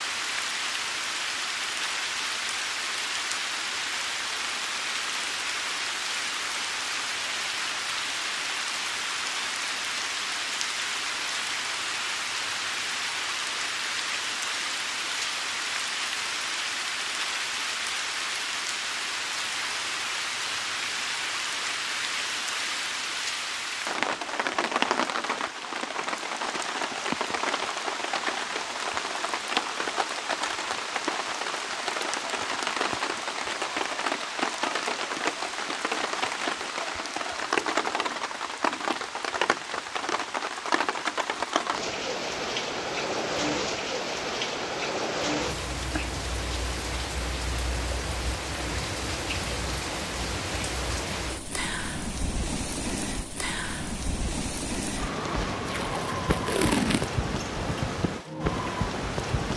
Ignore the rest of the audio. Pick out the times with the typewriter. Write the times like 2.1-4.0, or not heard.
not heard.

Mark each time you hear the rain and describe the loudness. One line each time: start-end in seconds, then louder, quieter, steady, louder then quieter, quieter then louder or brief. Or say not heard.
0.0-59.5 steady.